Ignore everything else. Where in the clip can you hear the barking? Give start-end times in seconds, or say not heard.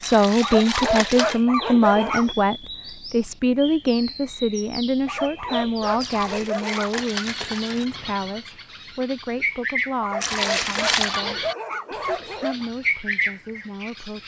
0.4-2.4, 5.0-7.0, 10.0-12.7.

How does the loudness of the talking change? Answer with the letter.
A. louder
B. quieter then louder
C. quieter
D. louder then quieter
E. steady
C.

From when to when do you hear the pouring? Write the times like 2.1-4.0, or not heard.
0.0-1.4, 6.0-7.9, 10.2-11.2.